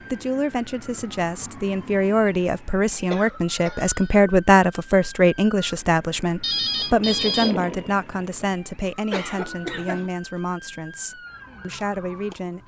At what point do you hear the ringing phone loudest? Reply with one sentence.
The loudest moment of the ringing phone is at 7 seconds.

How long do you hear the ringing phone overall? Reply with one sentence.
You can hear the ringing phone for 2 seconds altogether.